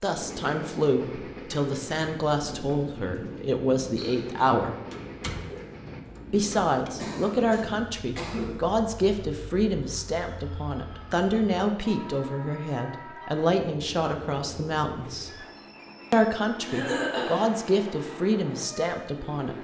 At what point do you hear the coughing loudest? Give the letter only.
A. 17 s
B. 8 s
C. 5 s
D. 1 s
A.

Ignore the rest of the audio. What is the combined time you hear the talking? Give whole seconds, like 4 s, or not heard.
17 s.